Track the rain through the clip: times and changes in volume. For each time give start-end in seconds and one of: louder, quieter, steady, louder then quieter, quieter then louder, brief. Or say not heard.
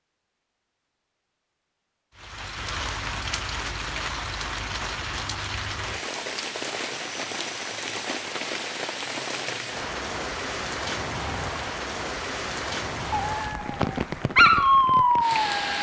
2.1-15.7 steady.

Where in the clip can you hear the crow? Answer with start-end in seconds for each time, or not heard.
not heard.